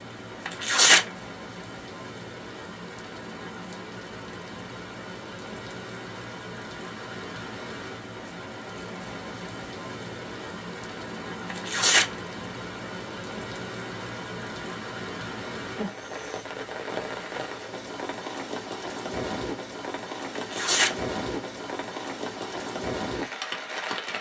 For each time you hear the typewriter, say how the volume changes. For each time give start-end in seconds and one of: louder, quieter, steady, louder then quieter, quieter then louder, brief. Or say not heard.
not heard.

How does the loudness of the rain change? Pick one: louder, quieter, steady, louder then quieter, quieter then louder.
louder.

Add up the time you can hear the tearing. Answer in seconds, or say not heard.
2 s.